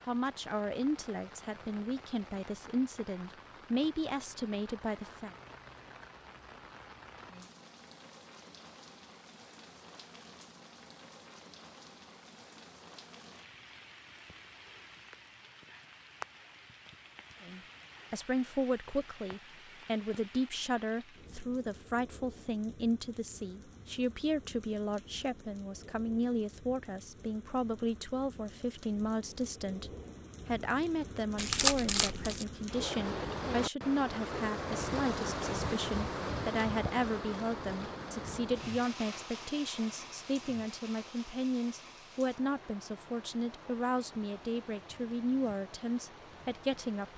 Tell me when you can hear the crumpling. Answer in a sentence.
The crumpling can be heard from 31.4 to 32.5 s.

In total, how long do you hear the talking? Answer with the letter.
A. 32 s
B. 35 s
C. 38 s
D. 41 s
B.